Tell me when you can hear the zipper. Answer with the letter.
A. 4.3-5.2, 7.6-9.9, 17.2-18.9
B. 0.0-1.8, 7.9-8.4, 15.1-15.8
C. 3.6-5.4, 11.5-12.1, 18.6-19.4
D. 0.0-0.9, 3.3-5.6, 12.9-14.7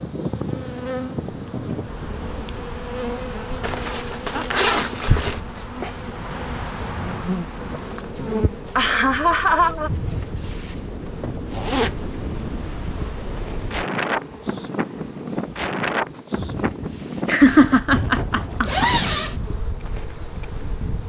C.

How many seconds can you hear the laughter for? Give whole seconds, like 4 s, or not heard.
5 s.